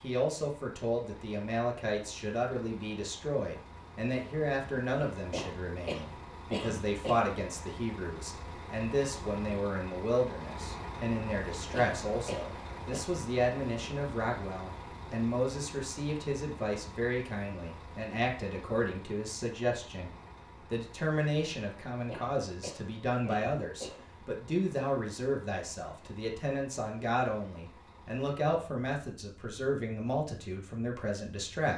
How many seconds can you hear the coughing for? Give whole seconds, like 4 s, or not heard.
5 s.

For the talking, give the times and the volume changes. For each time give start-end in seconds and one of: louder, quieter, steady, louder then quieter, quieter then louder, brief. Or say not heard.
0.0-20.1 steady
20.7-31.7 steady.